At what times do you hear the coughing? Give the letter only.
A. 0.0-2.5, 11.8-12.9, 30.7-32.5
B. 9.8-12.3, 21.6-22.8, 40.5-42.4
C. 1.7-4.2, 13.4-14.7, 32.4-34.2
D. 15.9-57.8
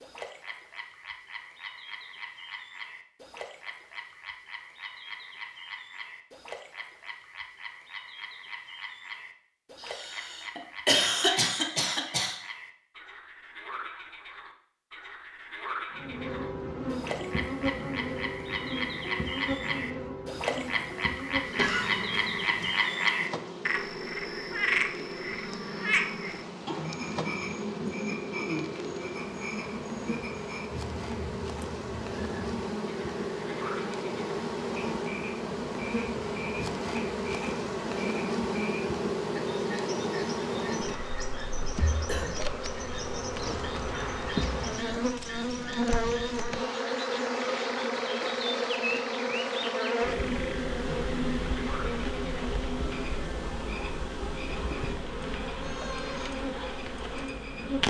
B.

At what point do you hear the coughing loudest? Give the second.
11 s.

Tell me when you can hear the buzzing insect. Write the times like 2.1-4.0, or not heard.
15.9-57.8.